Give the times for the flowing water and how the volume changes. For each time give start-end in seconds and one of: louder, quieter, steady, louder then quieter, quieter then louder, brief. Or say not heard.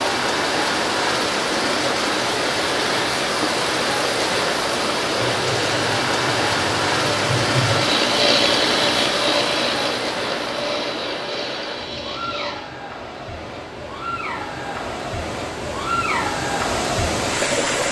0.0-17.8 quieter then louder.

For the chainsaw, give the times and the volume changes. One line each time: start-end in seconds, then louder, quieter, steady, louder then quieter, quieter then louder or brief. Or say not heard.
5.2-12.7 louder then quieter.